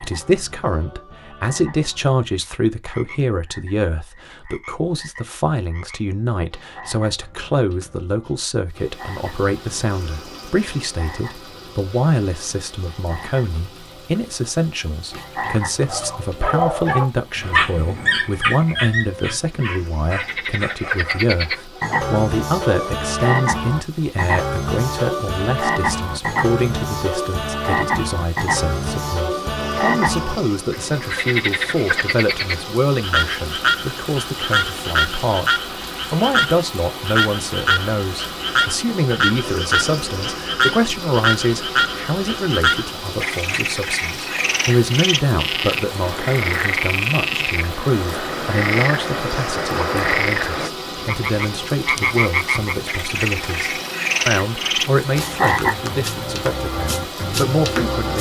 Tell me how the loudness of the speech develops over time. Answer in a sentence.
The loudness of the speech stays about the same.